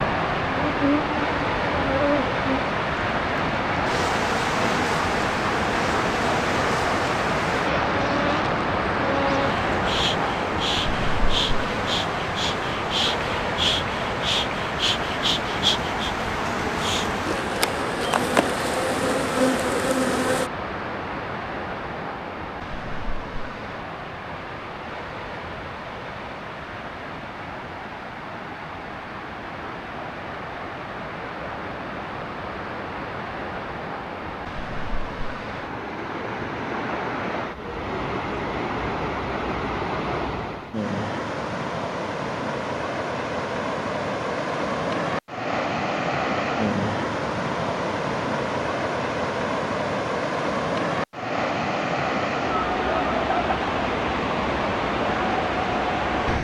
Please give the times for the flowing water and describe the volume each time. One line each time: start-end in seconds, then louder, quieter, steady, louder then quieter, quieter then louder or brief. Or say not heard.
0.0-56.3 quieter then louder.